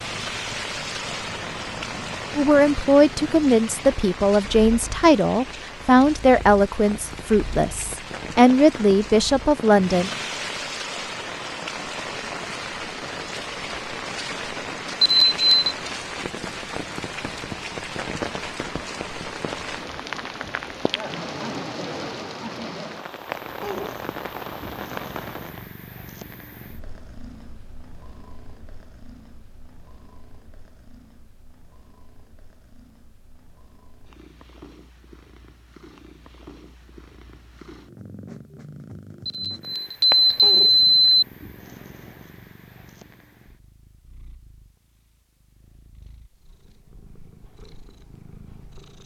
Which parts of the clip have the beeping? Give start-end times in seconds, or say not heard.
15.0-15.8, 39.2-41.2.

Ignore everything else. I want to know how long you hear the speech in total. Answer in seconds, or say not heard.
8 s.